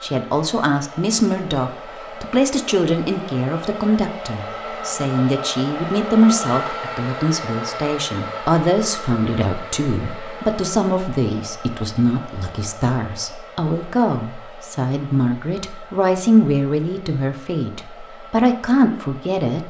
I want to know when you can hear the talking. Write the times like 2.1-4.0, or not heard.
0.0-19.6.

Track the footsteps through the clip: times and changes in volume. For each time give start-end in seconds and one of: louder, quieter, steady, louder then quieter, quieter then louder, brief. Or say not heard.
not heard.